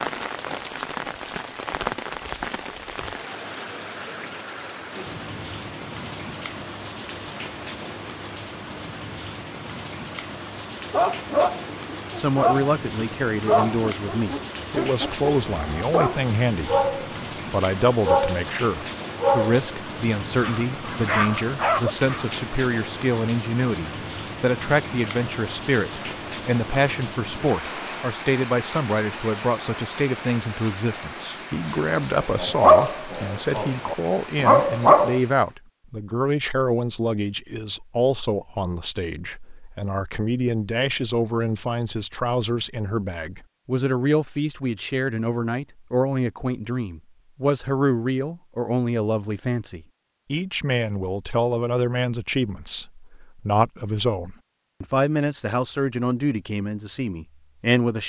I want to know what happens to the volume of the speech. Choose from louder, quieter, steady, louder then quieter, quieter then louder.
steady.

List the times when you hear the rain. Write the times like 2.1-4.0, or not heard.
0.0-35.5.